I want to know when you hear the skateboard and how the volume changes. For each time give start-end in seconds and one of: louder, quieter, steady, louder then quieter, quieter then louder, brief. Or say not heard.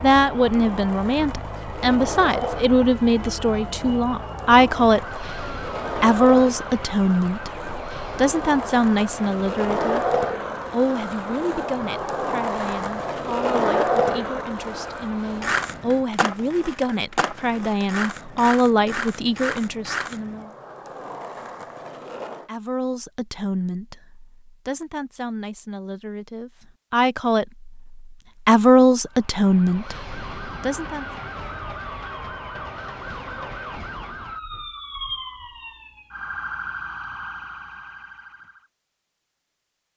0.0-22.5 louder then quieter.